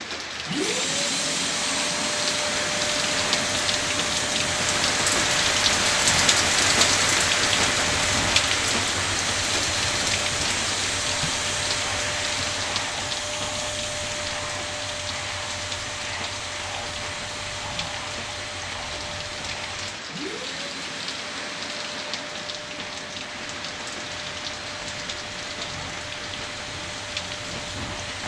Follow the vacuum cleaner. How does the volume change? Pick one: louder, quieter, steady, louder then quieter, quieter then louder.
quieter.